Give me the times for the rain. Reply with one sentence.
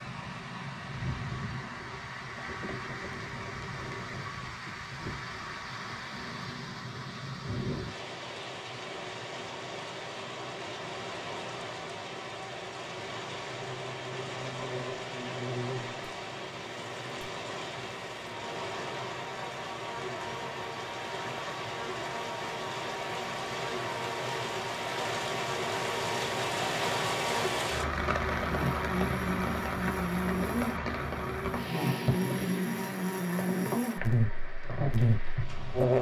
The rain can be heard from 0.0 to 35.9 s.